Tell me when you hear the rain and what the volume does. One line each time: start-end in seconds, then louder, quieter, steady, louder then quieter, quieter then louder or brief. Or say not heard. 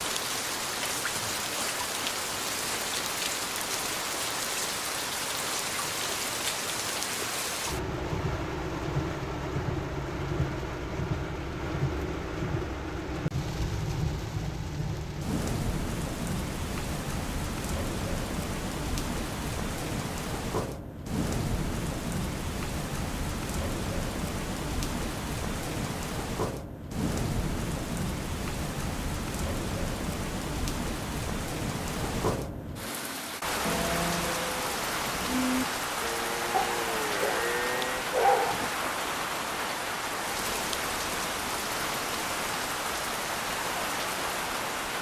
0.0-44.9 steady.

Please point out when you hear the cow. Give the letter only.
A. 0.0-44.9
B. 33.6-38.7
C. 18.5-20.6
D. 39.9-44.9
B.